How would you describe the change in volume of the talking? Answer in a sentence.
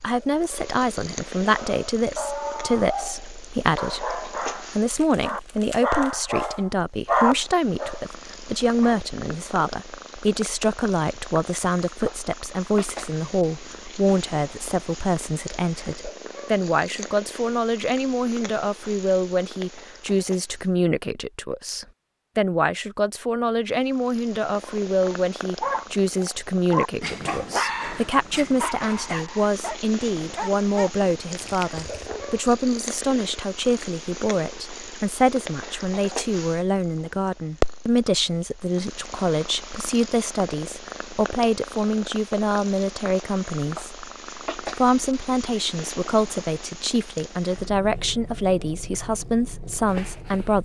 The loudness of the talking stays about the same.